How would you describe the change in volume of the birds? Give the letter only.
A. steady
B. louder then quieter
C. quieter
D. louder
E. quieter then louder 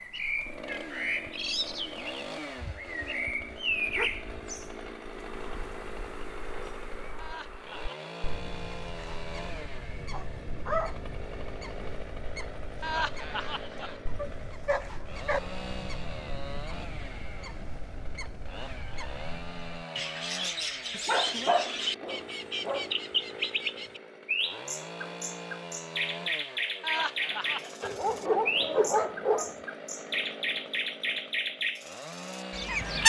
E.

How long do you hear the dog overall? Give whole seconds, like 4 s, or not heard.
8 s.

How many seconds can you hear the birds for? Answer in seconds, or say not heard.
33 s.